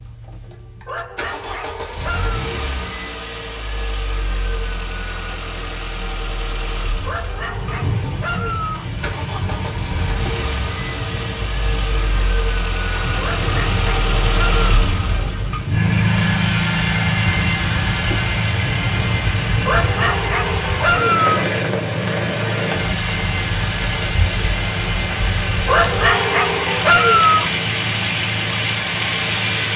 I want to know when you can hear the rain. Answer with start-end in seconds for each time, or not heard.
7.3-29.7.